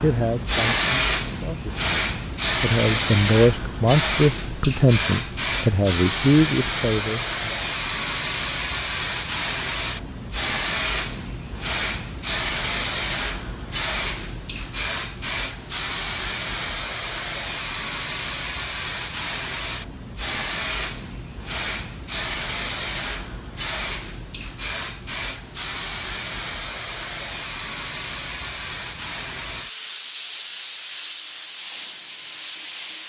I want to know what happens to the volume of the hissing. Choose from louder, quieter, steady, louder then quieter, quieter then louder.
quieter.